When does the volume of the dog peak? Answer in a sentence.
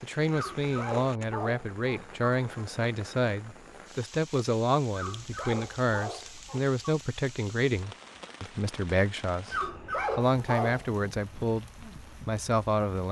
The volume of the dog peaks at 10 seconds.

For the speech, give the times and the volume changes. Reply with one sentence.
You can hear the speech from 0.0 to 13.0 s, at a steady volume.